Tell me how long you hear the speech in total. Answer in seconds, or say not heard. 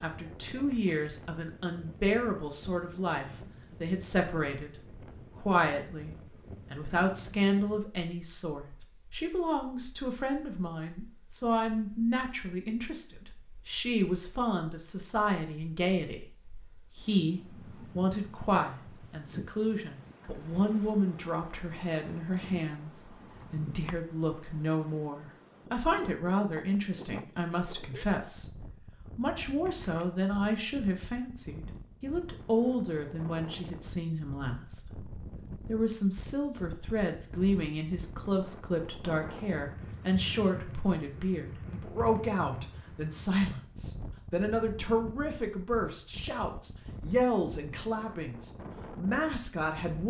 50 s.